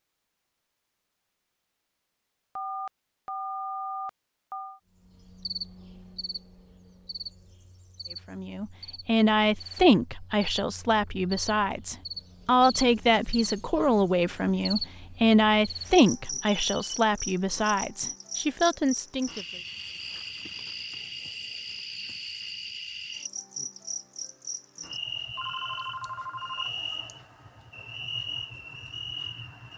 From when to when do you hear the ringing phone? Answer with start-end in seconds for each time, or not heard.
2.5-4.8, 16.4-17.1, 25.4-26.7.